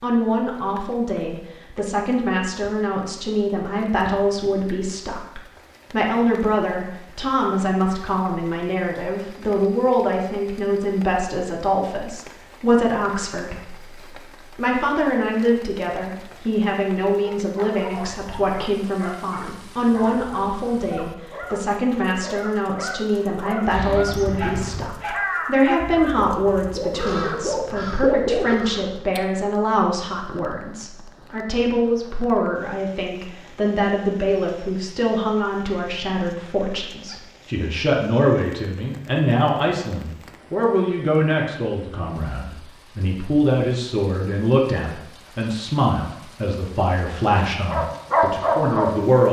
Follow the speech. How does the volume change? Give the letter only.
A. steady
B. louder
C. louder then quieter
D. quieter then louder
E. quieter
A.